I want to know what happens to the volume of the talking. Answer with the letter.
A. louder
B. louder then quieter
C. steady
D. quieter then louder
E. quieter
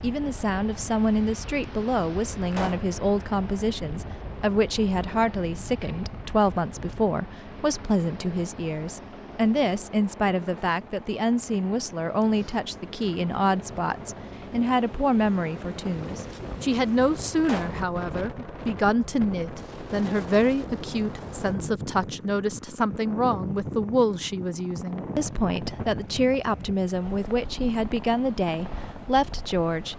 C.